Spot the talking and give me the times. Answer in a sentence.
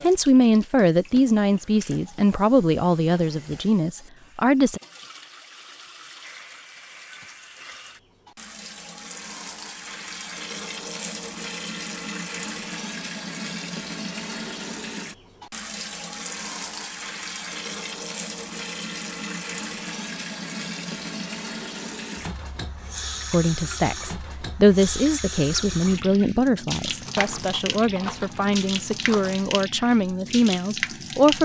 You can hear the talking from 0.0 to 4.8 s and from 23.3 to 31.3 s.